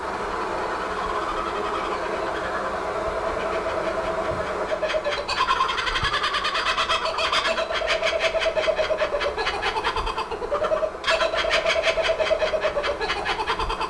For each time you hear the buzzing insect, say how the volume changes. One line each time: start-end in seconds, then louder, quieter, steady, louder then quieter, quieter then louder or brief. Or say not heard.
0.0-13.8 quieter.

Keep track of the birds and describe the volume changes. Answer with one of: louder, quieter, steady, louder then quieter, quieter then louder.
louder.